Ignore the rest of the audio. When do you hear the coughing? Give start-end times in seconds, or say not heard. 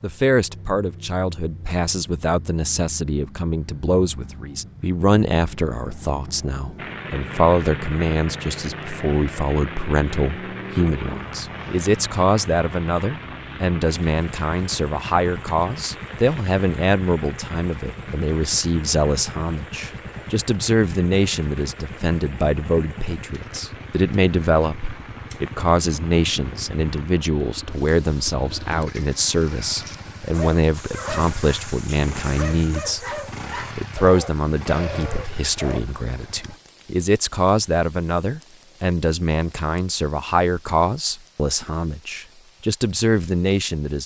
not heard.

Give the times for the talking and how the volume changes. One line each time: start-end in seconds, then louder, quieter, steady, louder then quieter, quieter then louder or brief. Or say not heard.
0.0-44.0 steady.